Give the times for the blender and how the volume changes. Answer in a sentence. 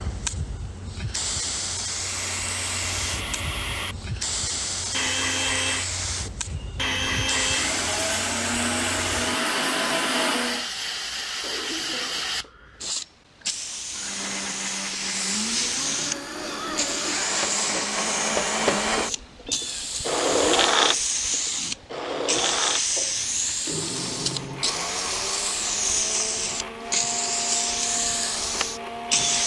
The blender can be heard from 1.9 to 10.7 s, getting louder; and from 13.9 to 29.4 s, getting louder then quieter.